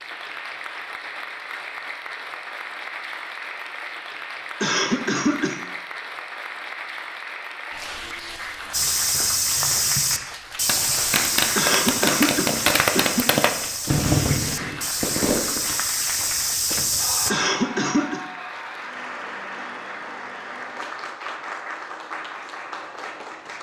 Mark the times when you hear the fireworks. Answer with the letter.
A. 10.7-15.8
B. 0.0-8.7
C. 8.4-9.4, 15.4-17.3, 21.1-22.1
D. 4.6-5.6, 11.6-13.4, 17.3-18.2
A.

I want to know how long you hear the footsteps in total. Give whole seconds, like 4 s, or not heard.
9 s.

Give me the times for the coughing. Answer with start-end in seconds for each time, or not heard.
4.6-5.6, 11.6-13.4, 17.3-18.2.